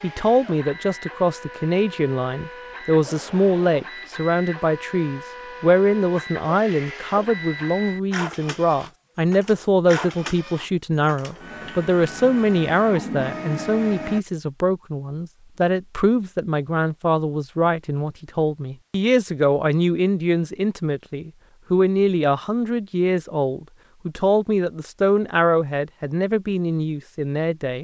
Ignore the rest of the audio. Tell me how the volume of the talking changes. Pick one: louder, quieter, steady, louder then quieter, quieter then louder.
steady.